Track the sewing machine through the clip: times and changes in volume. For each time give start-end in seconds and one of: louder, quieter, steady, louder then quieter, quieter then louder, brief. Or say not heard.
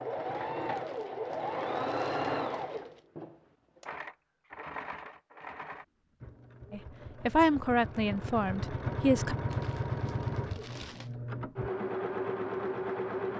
0.0-13.3 quieter then louder.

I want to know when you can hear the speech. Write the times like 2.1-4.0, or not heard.
6.7-9.3.